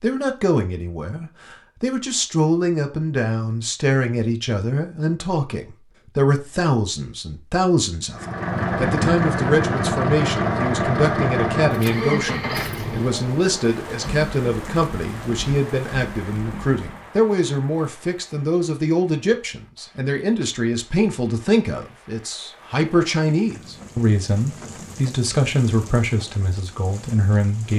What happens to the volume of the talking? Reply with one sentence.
The loudness of the talking stays about the same.